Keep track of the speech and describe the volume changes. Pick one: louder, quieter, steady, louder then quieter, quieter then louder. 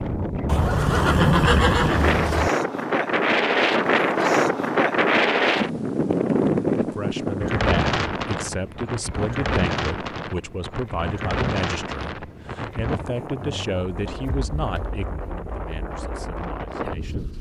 quieter.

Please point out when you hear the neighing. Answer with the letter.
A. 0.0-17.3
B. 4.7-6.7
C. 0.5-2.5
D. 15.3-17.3
C.